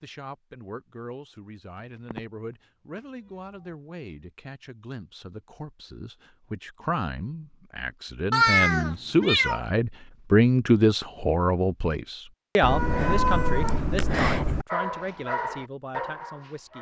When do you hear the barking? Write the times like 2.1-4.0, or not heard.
14.7-16.7.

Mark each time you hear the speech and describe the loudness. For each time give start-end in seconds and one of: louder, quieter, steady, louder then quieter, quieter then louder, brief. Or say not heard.
0.0-16.7 louder then quieter.